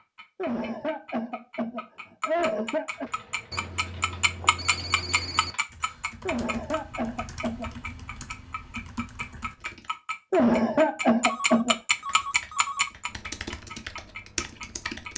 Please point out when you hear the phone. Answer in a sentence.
The phone can be heard from 3.5 to 5.5 s and from 11.2 to 12.9 s.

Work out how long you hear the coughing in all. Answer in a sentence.
You can hear the coughing for 6 seconds altogether.